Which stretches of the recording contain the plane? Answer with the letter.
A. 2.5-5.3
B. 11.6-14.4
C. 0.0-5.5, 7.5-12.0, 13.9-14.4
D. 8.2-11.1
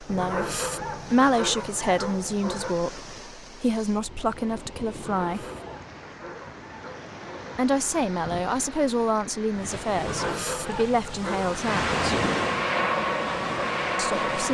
B.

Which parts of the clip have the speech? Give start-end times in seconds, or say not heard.
0.0-5.5, 7.5-12.0, 13.9-14.4.